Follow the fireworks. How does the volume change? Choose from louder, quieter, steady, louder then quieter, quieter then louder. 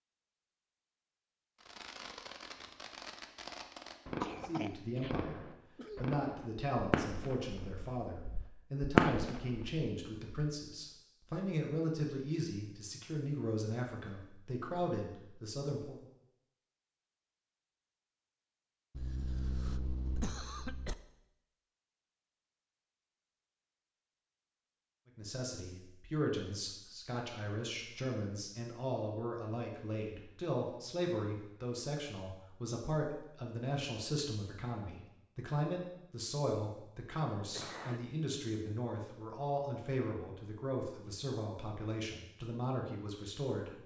louder.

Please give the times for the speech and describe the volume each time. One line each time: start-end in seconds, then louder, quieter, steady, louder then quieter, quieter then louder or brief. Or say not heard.
4.5-15.9 steady
25.1-43.8 steady.